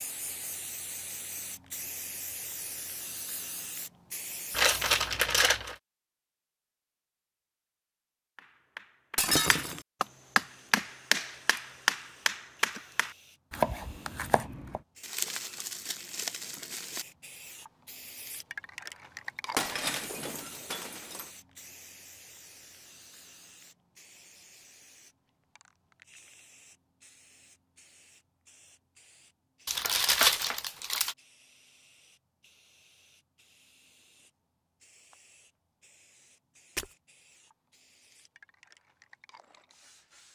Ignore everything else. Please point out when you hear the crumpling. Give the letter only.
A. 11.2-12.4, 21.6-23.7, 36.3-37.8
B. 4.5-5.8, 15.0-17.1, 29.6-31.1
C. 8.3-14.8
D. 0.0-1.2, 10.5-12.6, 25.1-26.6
B.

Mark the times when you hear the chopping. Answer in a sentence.
You can hear the chopping from 8.3 to 14.8 s.